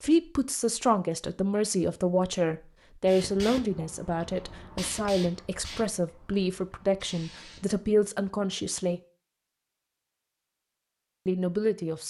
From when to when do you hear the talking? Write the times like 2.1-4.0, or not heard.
0.0-9.0, 11.2-12.0.